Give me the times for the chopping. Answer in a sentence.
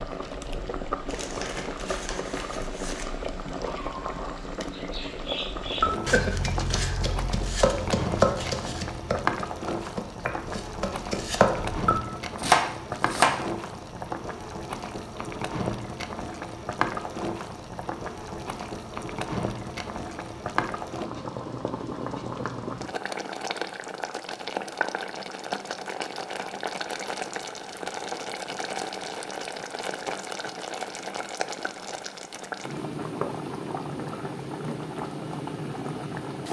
You can hear the chopping from 5.7 to 13.4 s.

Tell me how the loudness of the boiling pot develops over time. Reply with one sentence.
The volume of the boiling pot stays about the same.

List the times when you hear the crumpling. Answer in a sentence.
You can hear the crumpling from 1.1 to 3.0 s.